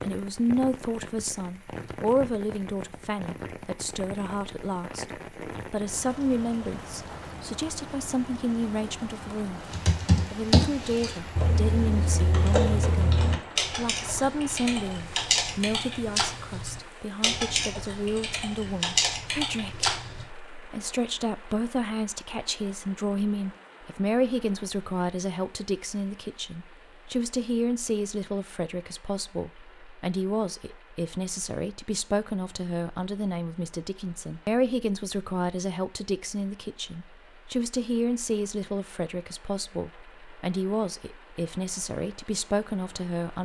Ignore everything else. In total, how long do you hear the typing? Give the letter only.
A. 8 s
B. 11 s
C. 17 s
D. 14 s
B.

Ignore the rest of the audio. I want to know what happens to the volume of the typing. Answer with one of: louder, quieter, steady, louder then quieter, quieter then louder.
steady.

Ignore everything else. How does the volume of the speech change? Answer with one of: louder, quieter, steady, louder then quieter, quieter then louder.
steady.